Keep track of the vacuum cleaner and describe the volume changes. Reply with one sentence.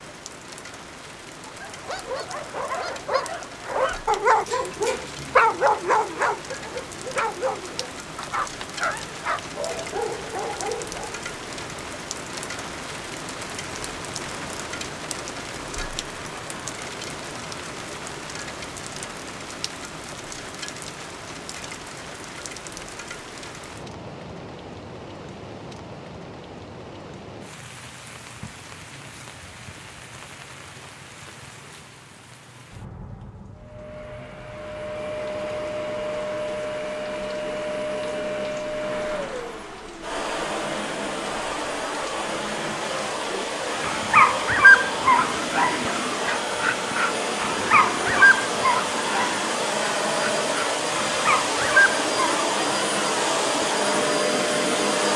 The volume of the vacuum cleaner goes up.